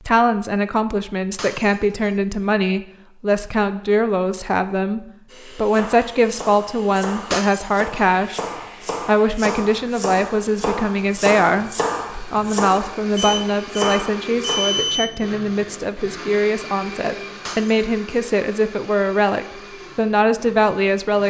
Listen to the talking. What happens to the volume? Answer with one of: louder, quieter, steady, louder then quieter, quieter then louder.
steady.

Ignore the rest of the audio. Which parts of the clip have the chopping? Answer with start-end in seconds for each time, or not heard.
5.7-14.6.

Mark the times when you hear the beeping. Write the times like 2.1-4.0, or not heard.
13.2-15.2.